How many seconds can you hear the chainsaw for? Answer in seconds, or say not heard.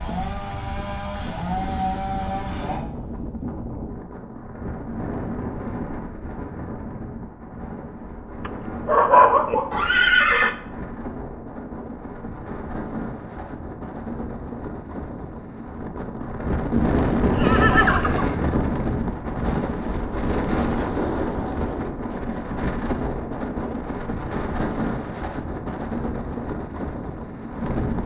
3 s.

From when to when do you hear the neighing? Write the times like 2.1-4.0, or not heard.
9.7-10.6, 16.7-18.6.